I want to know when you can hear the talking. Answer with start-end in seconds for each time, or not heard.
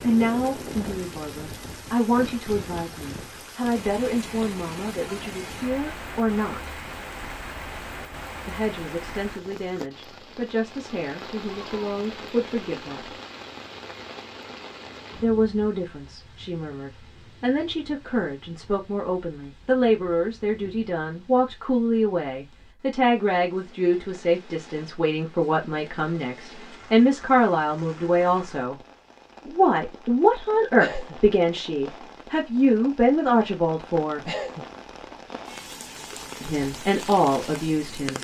0.0-6.8, 8.4-13.1, 15.2-28.8, 29.4-34.2, 36.4-38.1.